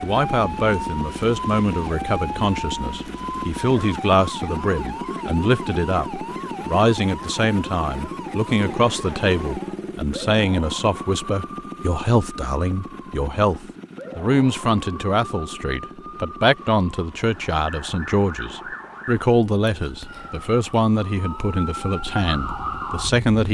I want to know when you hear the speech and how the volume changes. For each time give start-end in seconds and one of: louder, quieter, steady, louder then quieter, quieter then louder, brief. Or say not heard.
0.0-23.4 steady.